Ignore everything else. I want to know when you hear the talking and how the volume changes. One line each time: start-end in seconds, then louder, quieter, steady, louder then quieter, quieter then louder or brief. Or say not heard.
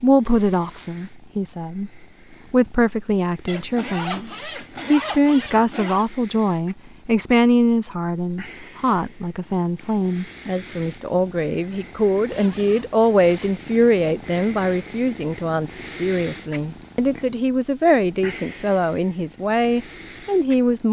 0.0-1.9 brief
2.5-20.8 steady.